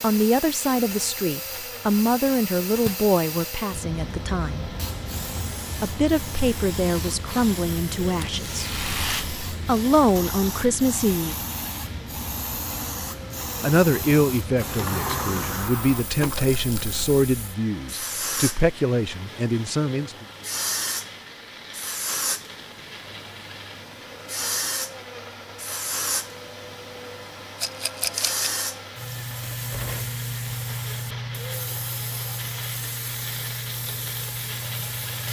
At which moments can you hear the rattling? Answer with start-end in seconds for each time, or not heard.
8.2-9.2, 16.6-17.0, 27.6-28.5.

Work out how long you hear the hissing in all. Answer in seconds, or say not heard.
35 s.